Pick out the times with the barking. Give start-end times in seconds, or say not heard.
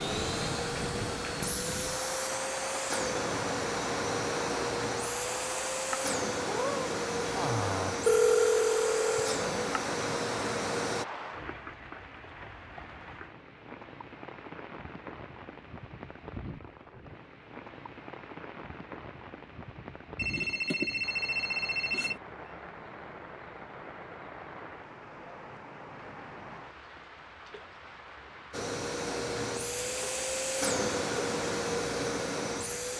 not heard.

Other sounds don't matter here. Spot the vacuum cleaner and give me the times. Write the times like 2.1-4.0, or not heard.
0.0-11.1, 28.5-32.9.